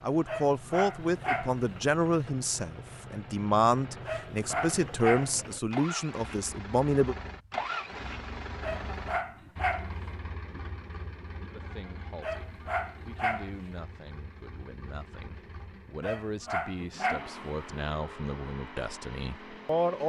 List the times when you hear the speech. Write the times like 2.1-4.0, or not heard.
0.0-7.2, 11.5-20.0.